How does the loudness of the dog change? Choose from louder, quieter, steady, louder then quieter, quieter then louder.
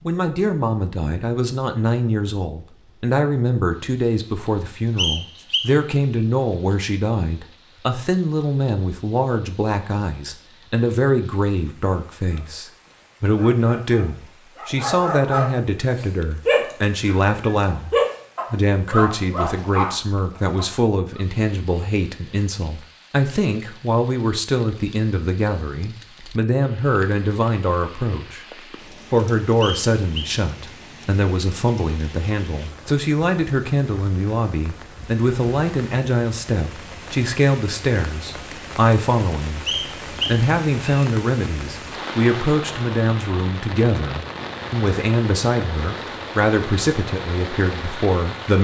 louder then quieter.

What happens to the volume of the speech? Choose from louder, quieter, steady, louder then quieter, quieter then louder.
steady.